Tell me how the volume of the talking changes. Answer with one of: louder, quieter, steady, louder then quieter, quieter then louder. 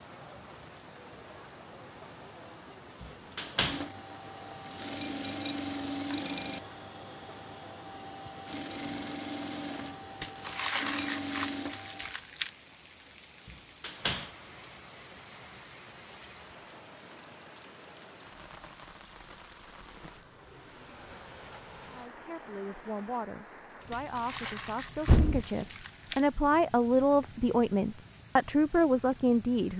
louder.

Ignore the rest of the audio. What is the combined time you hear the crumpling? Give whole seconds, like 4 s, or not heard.
5 s.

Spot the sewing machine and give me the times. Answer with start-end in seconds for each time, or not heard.
3.6-12.2.